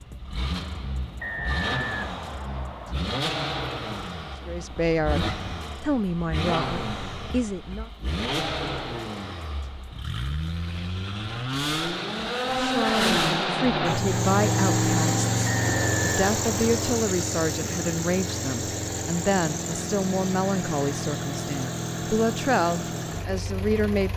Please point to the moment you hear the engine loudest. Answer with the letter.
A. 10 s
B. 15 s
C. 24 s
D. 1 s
B.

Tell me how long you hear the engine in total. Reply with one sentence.
The engine can be heard for 24 seconds in total.